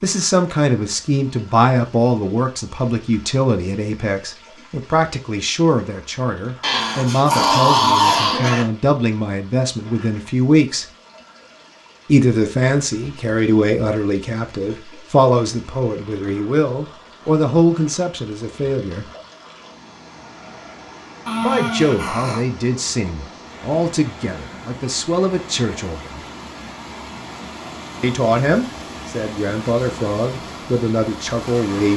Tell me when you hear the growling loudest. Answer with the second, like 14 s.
8 s.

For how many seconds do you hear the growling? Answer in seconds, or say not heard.
3 s.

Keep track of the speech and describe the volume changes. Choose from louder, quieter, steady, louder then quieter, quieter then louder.
steady.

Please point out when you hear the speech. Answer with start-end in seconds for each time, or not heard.
0.0-10.8, 12.1-19.1, 21.4-26.2, 28.0-31.9.